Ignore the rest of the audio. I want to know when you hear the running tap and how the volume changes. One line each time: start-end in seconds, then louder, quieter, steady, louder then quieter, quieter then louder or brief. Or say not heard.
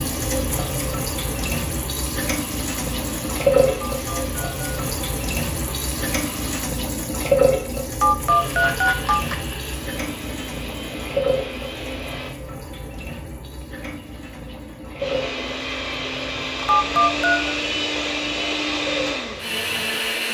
0.0-20.1 quieter.